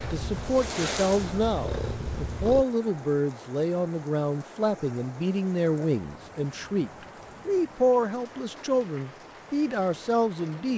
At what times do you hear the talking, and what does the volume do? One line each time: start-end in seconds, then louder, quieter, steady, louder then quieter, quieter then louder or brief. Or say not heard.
0.1-10.7 steady.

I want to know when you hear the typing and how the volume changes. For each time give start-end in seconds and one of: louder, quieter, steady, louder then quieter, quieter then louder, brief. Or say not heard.
not heard.